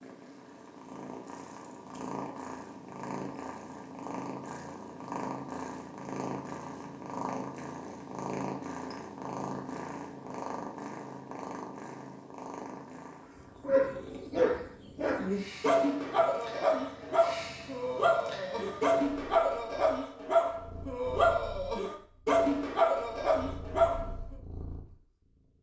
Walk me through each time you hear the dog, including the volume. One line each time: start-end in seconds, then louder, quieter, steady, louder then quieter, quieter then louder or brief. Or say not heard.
13.6-24.1 steady.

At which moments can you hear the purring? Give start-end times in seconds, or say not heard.
0.0-25.5.